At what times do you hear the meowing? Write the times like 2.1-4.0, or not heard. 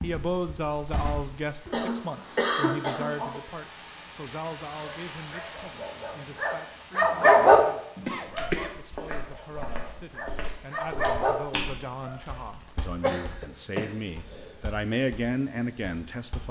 not heard.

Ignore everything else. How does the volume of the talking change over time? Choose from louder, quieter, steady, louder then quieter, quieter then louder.
quieter then louder.